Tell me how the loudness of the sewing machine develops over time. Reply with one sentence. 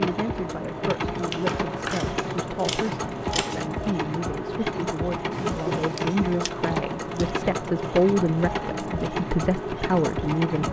The volume of the sewing machine stays about the same.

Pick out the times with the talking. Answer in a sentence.
The talking can be heard from 0.0 to 10.6 s.